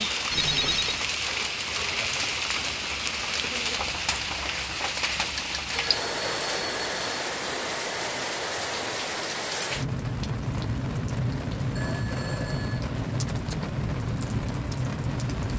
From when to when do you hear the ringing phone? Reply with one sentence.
You can hear the ringing phone from 0.3 to 1.1 s, from 5.7 to 7.2 s and from 11.8 to 12.8 s.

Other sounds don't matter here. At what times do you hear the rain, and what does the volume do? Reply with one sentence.
The rain can be heard from 0.0 to 15.5 s, at a steady volume.